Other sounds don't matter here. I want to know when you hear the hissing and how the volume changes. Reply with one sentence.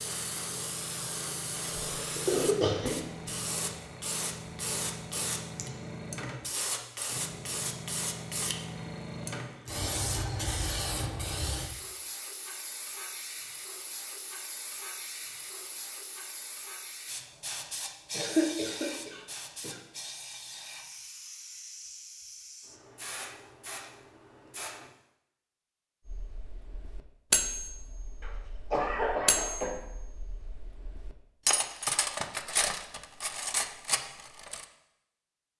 You can hear the hissing from 0.0 to 24.9 s, getting quieter.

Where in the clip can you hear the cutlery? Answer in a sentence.
You can hear the cutlery from 26.1 to 34.6 s.